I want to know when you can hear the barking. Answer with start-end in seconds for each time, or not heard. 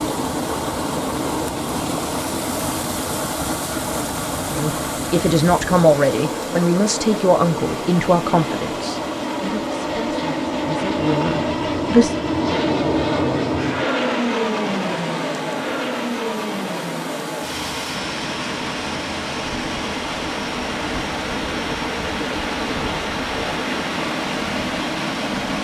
not heard.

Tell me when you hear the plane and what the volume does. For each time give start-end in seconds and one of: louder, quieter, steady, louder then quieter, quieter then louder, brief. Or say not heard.
0.0-25.5 louder then quieter.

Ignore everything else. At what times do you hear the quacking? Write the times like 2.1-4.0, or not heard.
not heard.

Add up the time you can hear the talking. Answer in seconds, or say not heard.
8 s.